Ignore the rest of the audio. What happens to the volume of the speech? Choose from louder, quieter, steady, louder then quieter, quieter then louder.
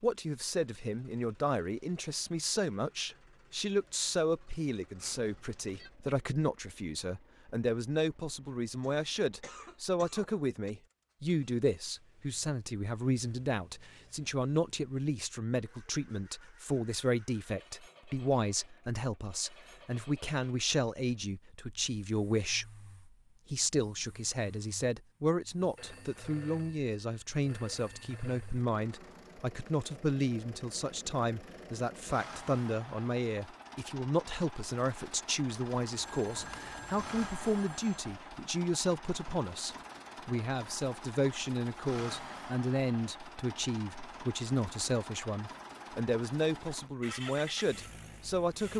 steady.